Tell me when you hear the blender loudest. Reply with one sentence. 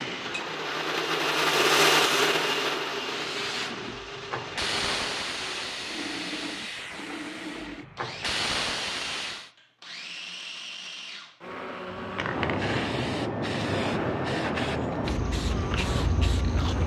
The volume of the blender peaks at 2 seconds.